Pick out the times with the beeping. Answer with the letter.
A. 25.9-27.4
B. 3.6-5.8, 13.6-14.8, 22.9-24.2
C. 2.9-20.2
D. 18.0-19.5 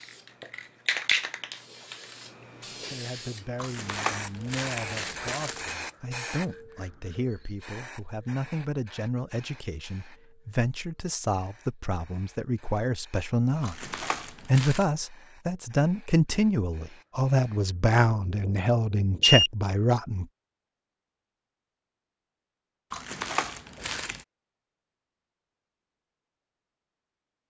D.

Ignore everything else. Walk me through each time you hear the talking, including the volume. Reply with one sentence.
You can hear the talking from 2.9 to 20.2 s, getting louder.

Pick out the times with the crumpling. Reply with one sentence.
The crumpling can be heard from 3.6 to 5.8 s, from 13.6 to 14.8 s and from 22.9 to 24.2 s.